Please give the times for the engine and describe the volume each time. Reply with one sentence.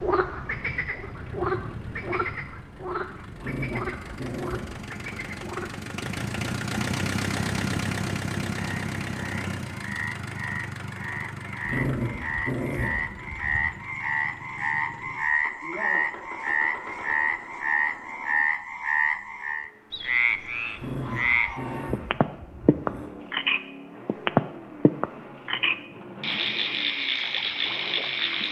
The engine can be heard from 0.2 to 28.4 s, getting louder then quieter.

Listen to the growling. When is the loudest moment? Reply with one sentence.
The loudest moment of the growling is at 12 seconds.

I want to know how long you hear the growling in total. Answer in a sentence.
The growling can be heard for 6 seconds in total.